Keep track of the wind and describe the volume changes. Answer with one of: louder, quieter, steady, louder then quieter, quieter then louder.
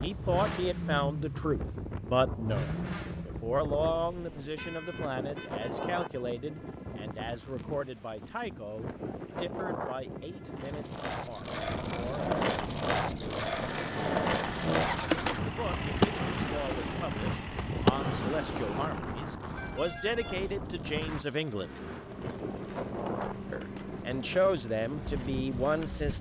steady.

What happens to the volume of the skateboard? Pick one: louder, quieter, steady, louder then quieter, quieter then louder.
quieter.